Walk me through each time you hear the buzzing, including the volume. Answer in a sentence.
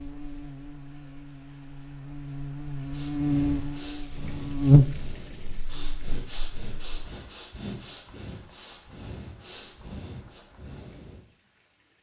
You can hear the buzzing from 0.0 to 7.0 s, getting louder then quieter.